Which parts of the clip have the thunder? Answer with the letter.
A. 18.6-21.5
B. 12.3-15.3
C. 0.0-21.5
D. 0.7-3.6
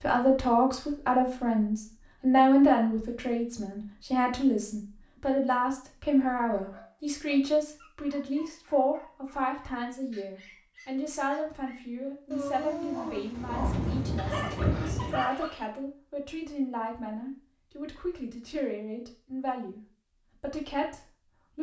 B.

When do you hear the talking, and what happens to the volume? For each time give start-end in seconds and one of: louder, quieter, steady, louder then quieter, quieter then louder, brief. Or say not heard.
0.0-21.5 quieter.